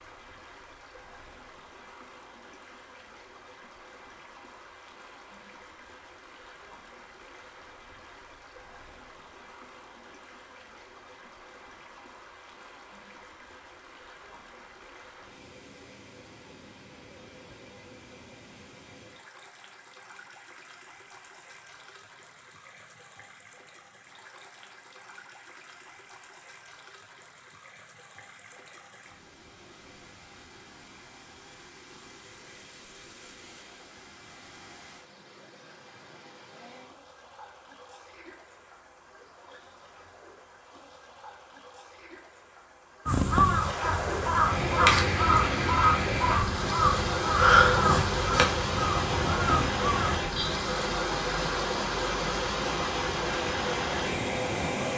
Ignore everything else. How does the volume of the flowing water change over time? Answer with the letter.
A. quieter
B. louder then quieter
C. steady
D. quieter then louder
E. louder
E.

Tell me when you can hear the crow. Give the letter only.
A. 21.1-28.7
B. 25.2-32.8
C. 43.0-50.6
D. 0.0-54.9
C.